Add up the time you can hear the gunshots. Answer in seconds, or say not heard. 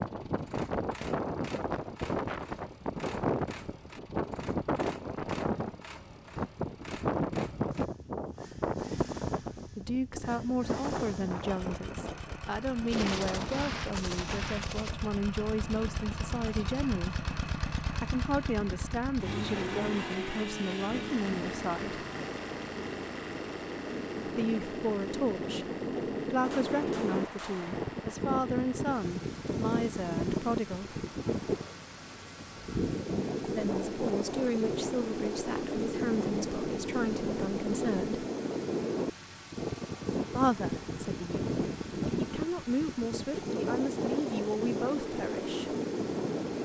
4 s.